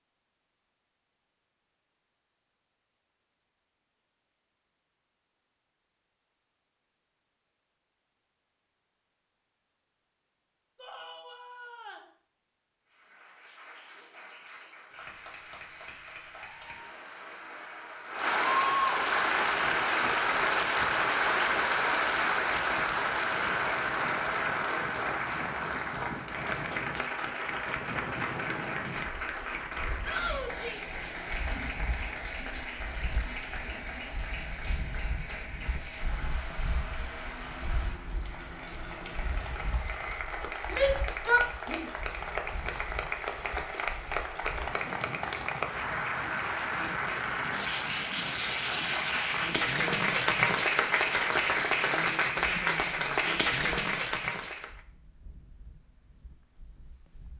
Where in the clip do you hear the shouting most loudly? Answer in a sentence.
The volume of the shouting peaks at 41 seconds.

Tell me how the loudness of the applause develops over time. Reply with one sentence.
The loudness of the applause goes down, then up.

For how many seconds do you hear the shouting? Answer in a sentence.
The shouting can be heard for 3 seconds in total.